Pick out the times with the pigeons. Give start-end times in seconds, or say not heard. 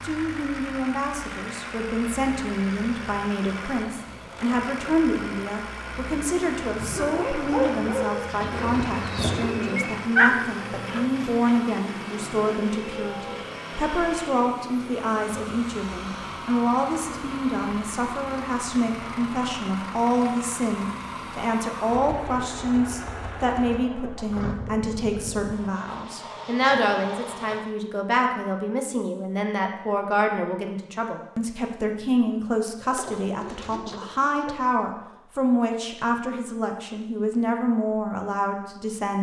8.5-10.2, 32.8-34.5.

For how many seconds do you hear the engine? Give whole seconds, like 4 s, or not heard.
28 s.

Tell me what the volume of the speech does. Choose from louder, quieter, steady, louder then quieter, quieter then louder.
steady.